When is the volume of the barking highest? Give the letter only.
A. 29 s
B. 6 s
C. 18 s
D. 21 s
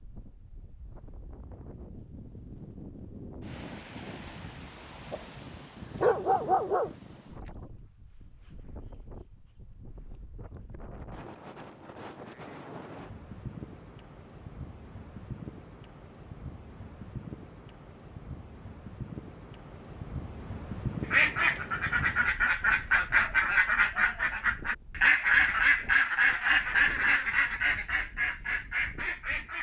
B.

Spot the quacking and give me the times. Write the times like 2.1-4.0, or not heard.
21.1-29.5.